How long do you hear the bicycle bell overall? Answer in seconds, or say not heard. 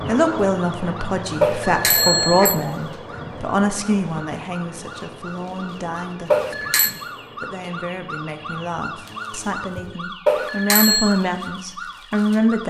3 s.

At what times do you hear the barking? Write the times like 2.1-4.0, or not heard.
not heard.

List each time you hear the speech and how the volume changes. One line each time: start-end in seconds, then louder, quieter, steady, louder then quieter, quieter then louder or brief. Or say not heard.
0.1-12.6 quieter then louder.